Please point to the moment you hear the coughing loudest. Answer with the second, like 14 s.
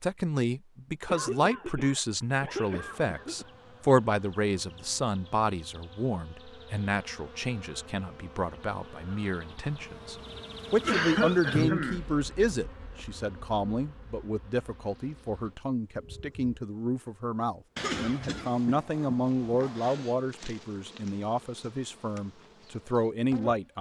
11 s.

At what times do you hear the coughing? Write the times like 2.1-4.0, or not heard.
1.1-3.5, 10.8-12.0, 17.8-20.1.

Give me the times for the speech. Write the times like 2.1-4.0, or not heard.
0.0-23.7.